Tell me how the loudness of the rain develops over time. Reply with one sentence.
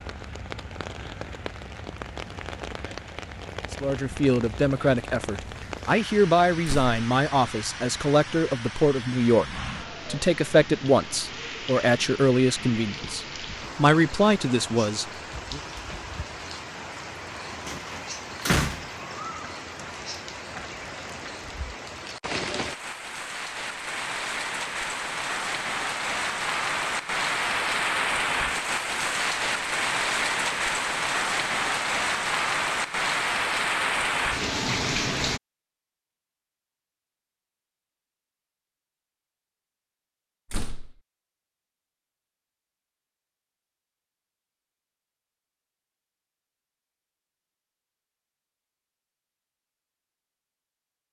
The loudness of the rain goes up.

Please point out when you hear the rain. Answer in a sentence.
The rain can be heard from 0.0 to 35.4 s.